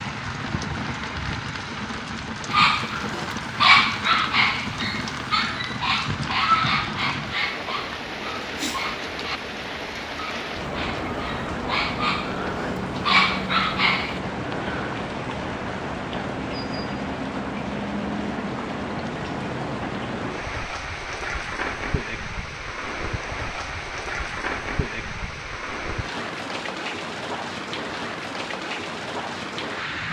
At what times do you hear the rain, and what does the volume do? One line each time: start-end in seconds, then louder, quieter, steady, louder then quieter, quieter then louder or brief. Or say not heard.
0.0-30.0 steady.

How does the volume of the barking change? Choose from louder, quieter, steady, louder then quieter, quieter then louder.
quieter then louder.